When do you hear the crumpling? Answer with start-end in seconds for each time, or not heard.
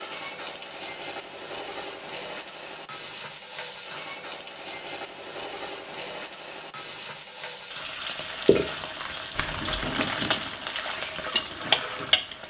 9.3-9.9.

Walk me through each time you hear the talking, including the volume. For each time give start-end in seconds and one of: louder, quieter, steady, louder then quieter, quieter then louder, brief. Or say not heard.
not heard.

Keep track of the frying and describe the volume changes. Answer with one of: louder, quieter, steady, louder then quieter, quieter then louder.
louder.